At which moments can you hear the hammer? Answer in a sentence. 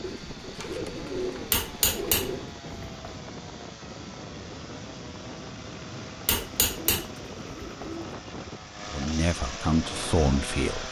You can hear the hammer from 1.5 to 3.1 s and from 6.2 to 7.9 s.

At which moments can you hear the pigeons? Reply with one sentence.
You can hear the pigeons from 0.0 to 2.5 s and from 6.2 to 8.2 s.